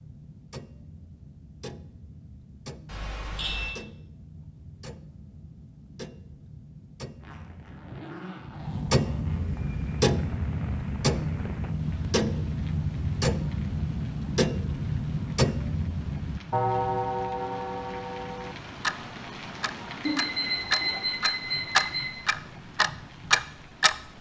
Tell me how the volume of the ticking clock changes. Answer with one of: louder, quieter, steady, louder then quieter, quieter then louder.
louder.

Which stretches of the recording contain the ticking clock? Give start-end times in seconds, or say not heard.
0.0-23.9.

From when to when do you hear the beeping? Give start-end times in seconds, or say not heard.
2.9-3.8, 9.4-10.0, 20.1-22.1.